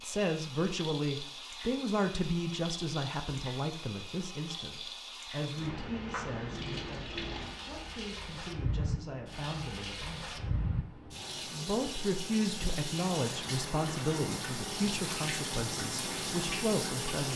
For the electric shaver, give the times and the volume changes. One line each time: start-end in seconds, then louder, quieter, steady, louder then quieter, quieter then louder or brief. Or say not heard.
not heard.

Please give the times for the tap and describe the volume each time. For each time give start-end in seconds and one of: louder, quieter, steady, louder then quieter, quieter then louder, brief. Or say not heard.
0.0-17.3 louder.